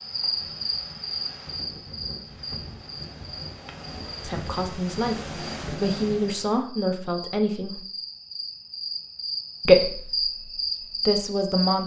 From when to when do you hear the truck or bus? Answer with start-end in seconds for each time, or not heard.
not heard.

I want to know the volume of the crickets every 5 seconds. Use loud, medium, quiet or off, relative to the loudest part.
medium, medium, loud.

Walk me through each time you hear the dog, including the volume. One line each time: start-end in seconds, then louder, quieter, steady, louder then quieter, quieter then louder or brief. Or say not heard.
not heard.